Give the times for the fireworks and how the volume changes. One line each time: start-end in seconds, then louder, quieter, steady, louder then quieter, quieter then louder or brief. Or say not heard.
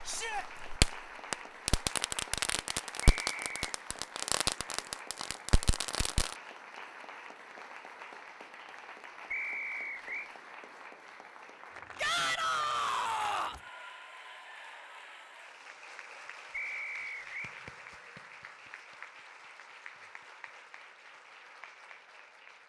0.0-6.3 quieter.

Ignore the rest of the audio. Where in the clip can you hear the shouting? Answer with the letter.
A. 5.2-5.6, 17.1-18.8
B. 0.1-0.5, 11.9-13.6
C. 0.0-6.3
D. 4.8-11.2
B.